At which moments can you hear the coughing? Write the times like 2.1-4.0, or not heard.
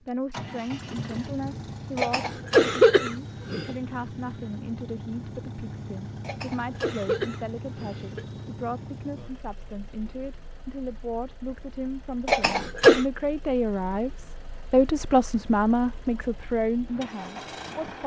1.9-3.7, 6.2-8.2, 12.2-13.1.